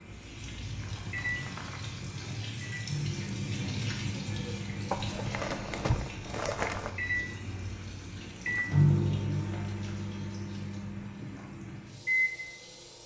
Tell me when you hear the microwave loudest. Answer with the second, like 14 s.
9 s.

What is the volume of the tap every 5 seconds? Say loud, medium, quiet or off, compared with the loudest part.
loud, medium, medium.